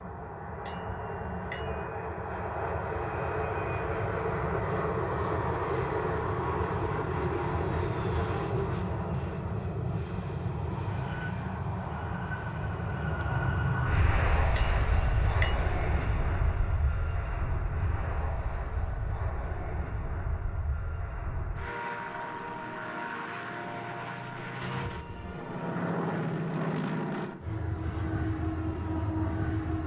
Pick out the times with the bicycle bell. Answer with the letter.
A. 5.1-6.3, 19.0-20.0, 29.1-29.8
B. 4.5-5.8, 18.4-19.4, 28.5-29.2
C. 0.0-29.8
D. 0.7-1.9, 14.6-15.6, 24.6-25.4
D.